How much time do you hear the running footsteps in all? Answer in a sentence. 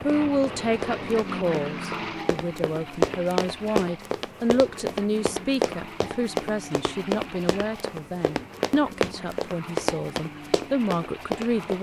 You can hear the running footsteps for 12 seconds altogether.